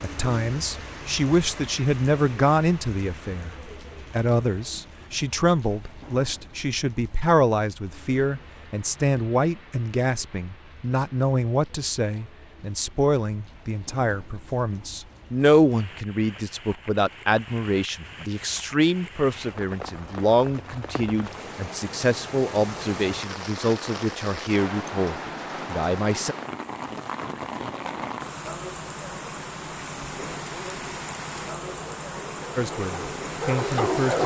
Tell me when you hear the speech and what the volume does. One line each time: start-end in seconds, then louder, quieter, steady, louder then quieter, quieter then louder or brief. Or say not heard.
0.0-26.4 steady
32.5-34.2 brief.